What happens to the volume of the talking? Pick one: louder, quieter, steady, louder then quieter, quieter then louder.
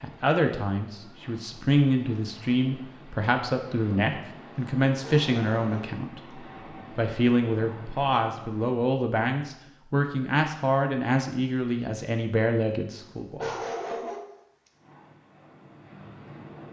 steady.